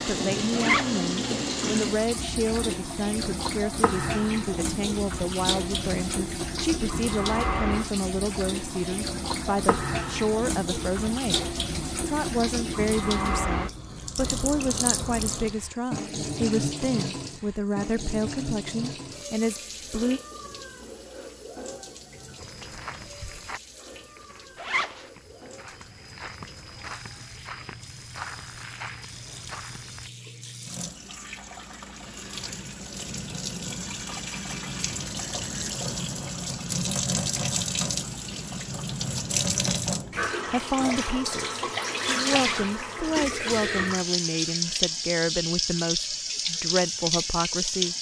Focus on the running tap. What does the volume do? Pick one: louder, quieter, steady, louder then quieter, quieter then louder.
quieter then louder.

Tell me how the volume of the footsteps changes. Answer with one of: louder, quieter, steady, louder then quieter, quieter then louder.
quieter then louder.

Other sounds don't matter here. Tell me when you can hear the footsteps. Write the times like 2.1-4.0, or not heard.
22.4-30.1.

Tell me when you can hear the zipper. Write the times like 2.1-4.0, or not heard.
0.5-1.0, 24.6-25.1, 42.3-42.8.